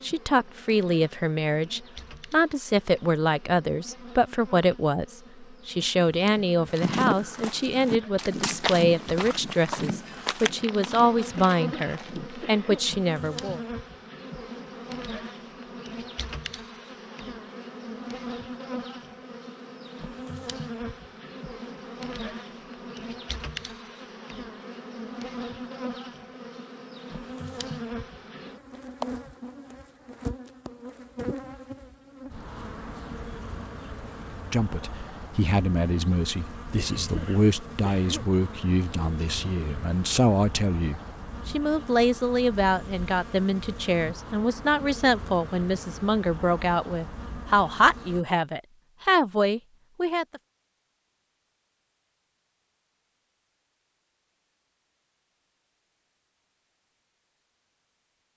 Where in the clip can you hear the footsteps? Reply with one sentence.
The footsteps can be heard from 6.7 to 12.4 s.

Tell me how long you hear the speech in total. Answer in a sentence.
The speech can be heard for 30 seconds in total.